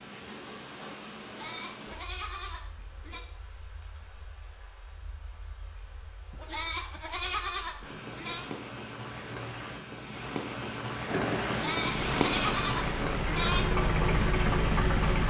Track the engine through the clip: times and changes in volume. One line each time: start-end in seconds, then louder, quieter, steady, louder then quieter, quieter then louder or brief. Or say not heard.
11.1-15.2 louder.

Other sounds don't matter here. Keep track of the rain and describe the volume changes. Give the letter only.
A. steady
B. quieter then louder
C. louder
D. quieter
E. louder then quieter
B.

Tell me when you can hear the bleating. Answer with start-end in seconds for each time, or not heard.
1.2-3.2, 6.3-8.5, 11.4-13.7.